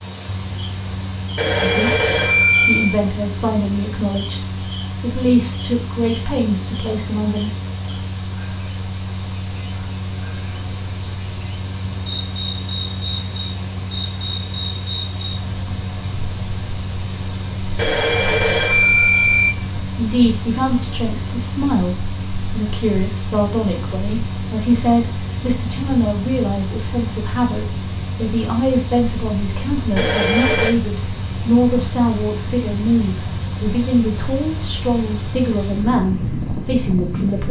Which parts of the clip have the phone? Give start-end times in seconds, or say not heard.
1.4-3.0, 17.8-19.6, 29.9-30.8.